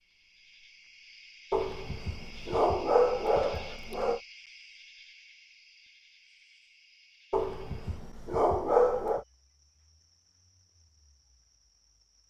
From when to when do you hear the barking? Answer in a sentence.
The barking can be heard from 1.5 to 4.2 s and from 7.3 to 9.2 s.